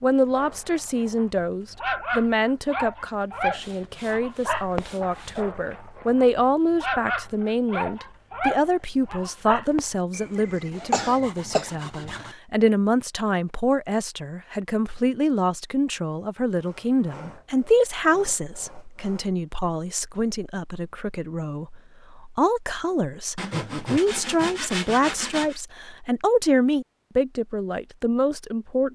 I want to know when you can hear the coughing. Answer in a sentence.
The coughing can be heard from 10.1 to 11.7 s.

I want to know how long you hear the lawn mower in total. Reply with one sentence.
The lawn mower can't be heard in this clip.